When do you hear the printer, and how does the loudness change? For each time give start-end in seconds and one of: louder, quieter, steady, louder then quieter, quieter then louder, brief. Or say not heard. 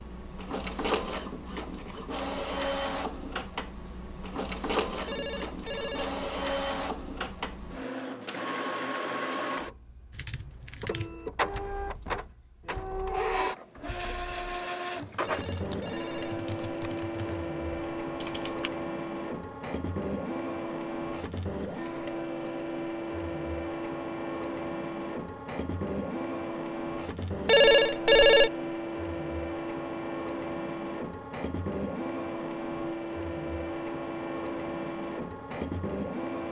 0.0-36.4 steady.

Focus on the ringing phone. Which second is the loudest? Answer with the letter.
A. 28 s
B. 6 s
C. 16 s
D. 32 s
A.